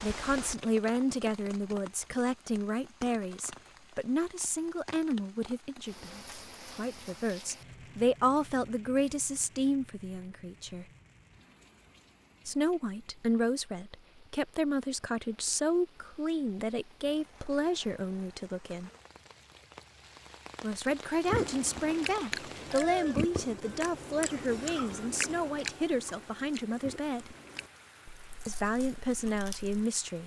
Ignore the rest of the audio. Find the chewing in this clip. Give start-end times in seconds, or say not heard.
21.2-29.9.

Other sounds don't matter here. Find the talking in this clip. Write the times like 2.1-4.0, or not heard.
0.0-10.8, 12.4-18.9, 20.6-27.4, 28.4-30.2.